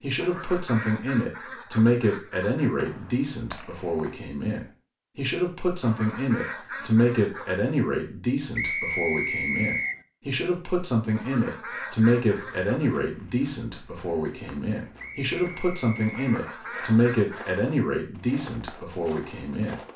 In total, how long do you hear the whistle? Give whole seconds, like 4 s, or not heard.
4 s.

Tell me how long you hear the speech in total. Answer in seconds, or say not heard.
20 s.